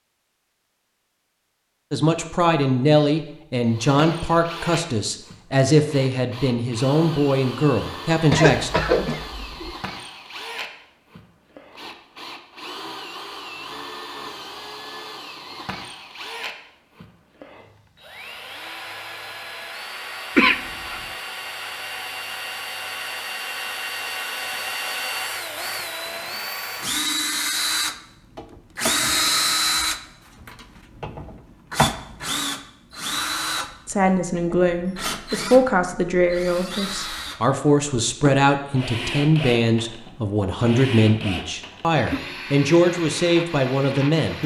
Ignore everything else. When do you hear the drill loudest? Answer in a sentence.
The volume of the drill peaks at 29 seconds.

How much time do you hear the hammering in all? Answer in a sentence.
The hammering can't be heard in this clip.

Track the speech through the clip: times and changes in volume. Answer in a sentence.
You can hear the speech from 1.9 to 8.7 s, at a steady volume; and from 33.9 to 44.4 s, at a steady volume.